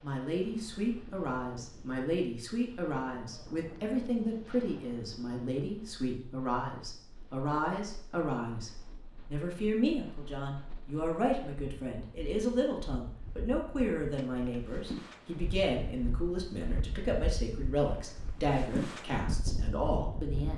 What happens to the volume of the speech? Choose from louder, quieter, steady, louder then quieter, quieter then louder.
steady.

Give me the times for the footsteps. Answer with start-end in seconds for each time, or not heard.
not heard.